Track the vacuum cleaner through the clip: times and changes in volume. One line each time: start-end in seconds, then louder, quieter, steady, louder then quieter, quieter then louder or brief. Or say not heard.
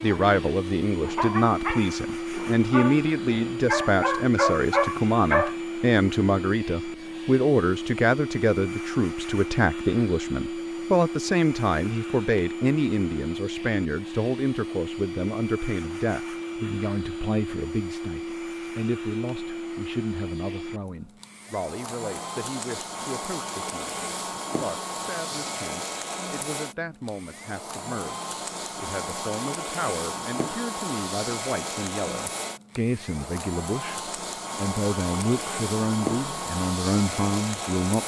0.0-38.0 steady.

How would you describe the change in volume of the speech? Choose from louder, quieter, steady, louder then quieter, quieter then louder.
quieter then louder.